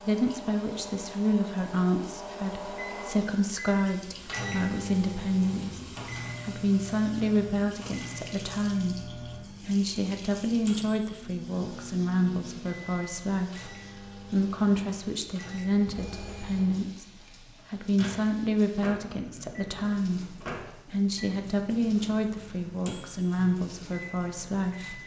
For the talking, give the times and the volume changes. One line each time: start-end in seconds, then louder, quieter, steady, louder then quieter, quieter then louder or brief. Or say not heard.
0.0-25.0 steady.